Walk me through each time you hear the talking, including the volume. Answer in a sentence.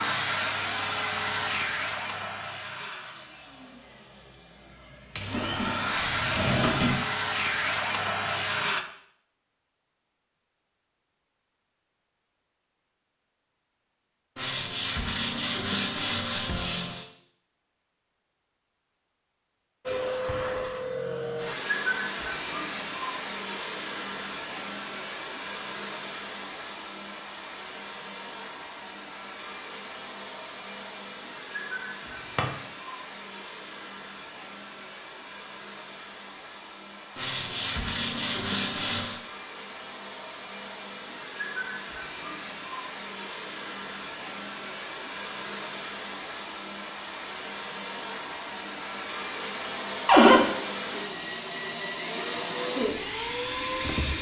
You can't hear the talking here.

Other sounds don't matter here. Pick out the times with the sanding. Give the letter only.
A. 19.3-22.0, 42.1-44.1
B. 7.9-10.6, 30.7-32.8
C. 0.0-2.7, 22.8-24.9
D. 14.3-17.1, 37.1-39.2
D.